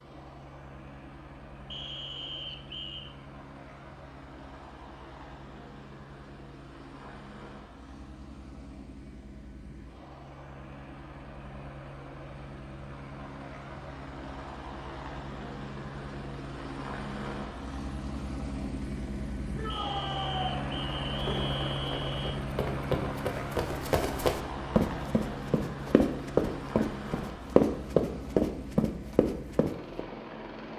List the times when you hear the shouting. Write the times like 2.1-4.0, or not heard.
19.6-20.6.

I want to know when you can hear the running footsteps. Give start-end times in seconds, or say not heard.
21.1-30.1.